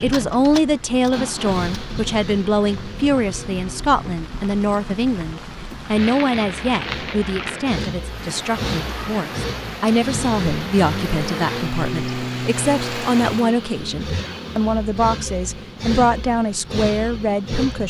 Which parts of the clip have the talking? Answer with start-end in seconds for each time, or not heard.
0.0-17.8.